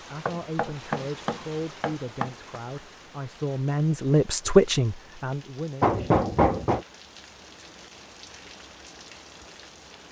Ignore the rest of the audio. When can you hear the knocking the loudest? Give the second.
6 s.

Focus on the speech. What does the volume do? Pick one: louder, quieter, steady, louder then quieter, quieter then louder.
louder.